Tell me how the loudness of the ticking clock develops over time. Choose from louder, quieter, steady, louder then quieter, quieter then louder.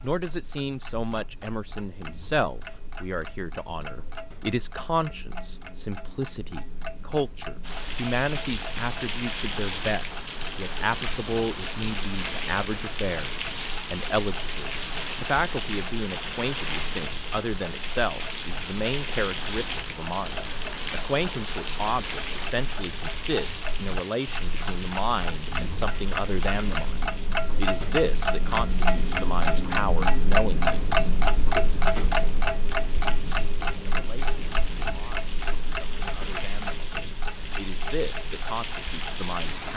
louder then quieter.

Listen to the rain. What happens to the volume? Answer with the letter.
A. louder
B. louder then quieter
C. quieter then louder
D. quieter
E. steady
C.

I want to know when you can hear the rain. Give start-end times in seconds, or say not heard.
7.6-39.7.